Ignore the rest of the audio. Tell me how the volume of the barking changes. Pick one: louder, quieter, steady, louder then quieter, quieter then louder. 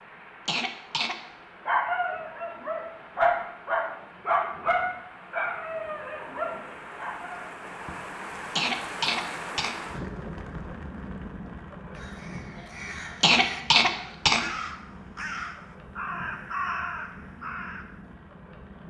louder then quieter.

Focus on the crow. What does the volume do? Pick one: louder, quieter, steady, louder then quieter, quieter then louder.
louder.